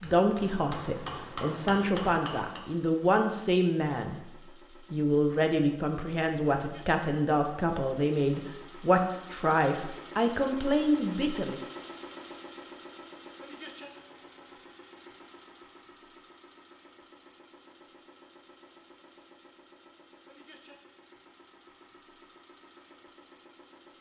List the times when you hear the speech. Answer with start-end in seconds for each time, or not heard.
0.0-4.2, 4.9-11.6.